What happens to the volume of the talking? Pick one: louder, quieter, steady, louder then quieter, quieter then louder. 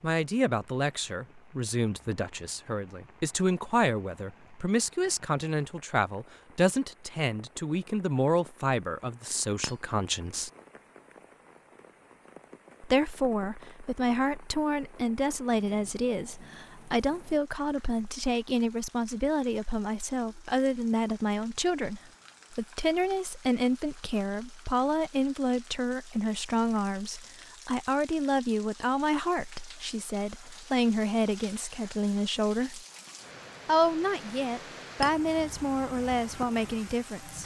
steady.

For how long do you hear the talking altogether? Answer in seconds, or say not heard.
34 s.